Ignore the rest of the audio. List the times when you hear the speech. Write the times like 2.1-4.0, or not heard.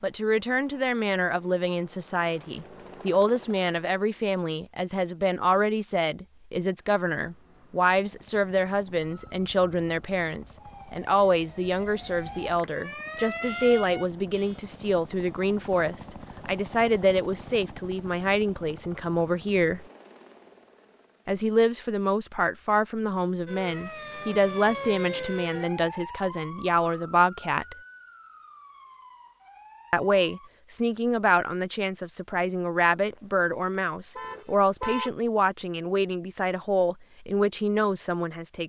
0.0-19.9, 21.2-27.8, 29.9-38.6.